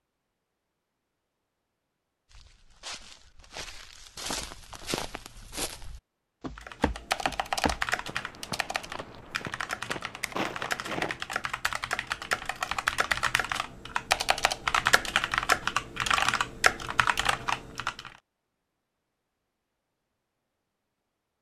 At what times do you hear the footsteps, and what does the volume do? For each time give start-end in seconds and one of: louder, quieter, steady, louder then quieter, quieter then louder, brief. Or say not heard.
2.3-11.2 steady.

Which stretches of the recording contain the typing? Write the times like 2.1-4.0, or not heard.
6.5-18.1.